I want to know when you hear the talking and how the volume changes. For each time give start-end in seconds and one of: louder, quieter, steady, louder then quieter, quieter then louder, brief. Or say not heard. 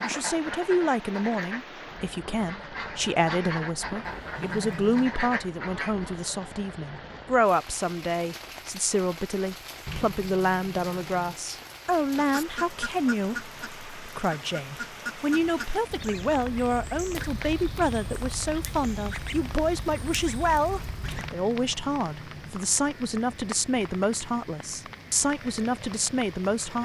0.0-26.8 steady.